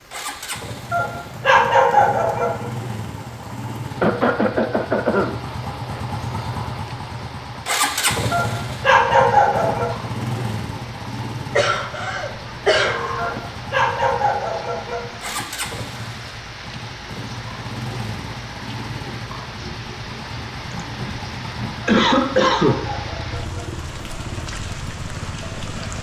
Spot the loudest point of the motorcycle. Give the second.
8 s.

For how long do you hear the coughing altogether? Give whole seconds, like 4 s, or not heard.
5 s.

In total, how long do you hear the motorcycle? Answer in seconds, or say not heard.
26 s.